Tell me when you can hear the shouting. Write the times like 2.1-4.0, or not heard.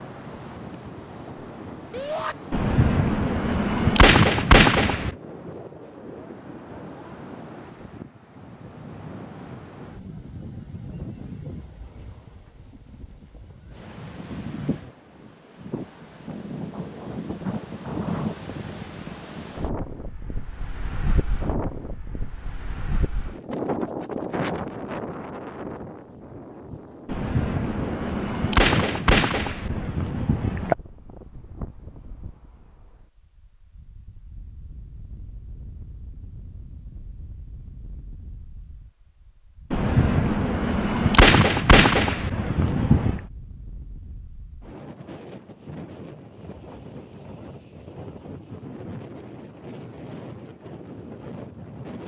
1.9-2.4.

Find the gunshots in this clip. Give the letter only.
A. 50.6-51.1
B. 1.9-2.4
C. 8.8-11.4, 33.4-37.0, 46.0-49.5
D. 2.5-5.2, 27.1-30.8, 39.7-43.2
D.